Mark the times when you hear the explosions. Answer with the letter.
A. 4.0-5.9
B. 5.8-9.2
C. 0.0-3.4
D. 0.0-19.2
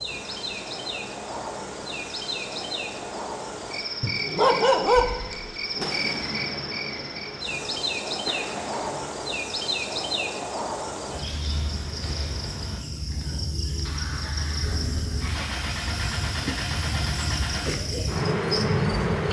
B.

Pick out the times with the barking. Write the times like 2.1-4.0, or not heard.
4.0-5.9.